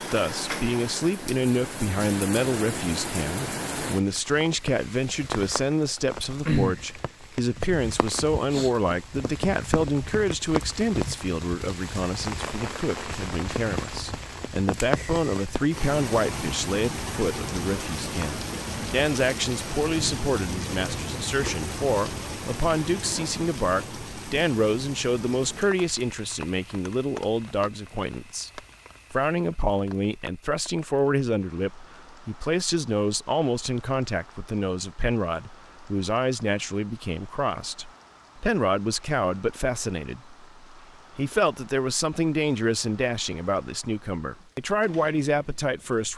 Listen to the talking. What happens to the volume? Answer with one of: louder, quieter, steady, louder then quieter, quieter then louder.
steady.